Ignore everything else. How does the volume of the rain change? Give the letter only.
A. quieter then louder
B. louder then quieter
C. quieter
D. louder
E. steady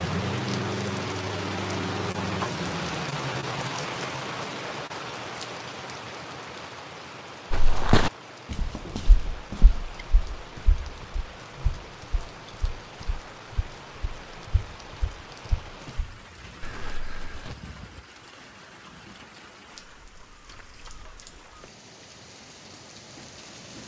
C.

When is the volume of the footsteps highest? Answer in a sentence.
The volume of the footsteps peaks at 8 seconds.